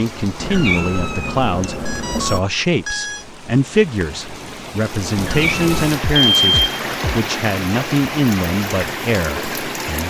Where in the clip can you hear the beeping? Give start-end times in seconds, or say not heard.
1.6-3.2, 6.0-7.2.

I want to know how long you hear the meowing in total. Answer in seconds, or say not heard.
3 s.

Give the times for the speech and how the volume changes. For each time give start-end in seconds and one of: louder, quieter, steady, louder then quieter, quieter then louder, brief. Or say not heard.
0.0-10.0 steady.